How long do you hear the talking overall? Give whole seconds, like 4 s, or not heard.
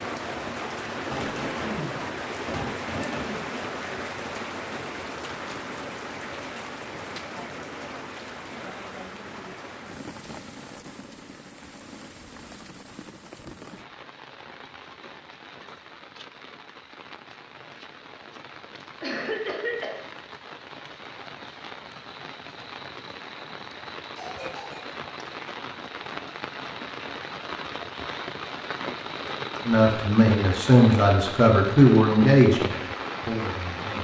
4 s.